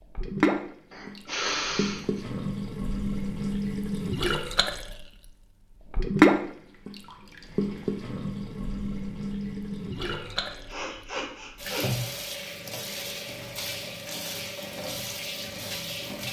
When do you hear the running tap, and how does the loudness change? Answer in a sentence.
You can hear the running tap from 0.1 to 16.2 s, getting louder then quieter.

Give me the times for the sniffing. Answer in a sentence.
You can hear the sniffing from 0.9 to 2.2 s and from 10.1 to 12.1 s.